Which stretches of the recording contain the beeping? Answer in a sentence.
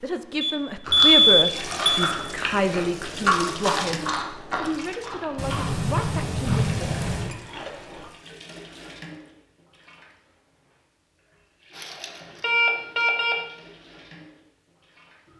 You can hear the beeping from 0.4 to 2.0 s, from 5.3 to 7.3 s and from 11.8 to 13.3 s.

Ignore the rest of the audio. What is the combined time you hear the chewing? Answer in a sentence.
The chewing can be heard for 7 seconds in total.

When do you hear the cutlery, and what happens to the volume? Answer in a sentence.
You can't hear the cutlery here.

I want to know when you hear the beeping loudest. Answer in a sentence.
The volume of the beeping peaks at 1 second.